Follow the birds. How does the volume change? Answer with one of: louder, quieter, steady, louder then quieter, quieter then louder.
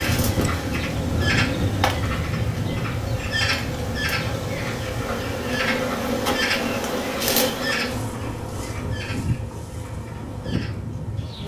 quieter.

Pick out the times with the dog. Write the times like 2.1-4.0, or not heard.
not heard.